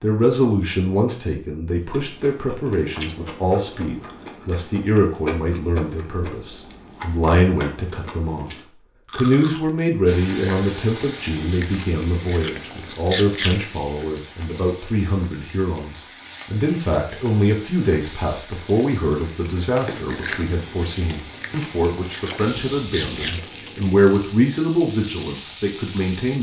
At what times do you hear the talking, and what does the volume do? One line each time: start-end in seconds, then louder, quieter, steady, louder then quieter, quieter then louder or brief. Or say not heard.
0.0-26.3 steady.